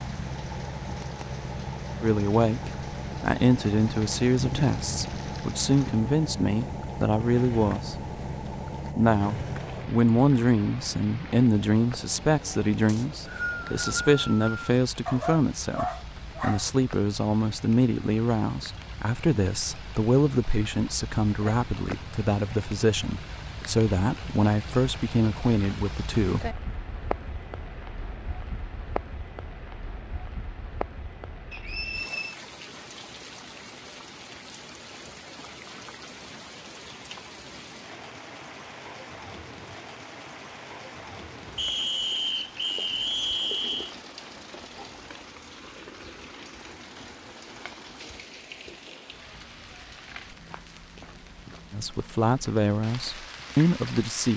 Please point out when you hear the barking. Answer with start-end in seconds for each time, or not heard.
15.1-16.6.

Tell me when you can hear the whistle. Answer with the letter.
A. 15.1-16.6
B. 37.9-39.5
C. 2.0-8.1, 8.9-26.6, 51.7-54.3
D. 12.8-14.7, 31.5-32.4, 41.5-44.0
D.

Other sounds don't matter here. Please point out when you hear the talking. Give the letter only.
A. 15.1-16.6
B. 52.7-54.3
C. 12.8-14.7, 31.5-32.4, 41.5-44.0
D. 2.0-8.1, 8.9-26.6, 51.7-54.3
D.